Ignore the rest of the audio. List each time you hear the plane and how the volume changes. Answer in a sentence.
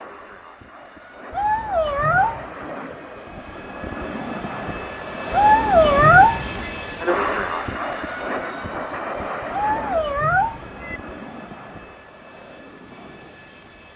You can hear the plane from 0.0 to 13.9 s, getting louder then quieter.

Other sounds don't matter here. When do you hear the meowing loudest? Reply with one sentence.
The loudest moment of the meowing is at 6 seconds.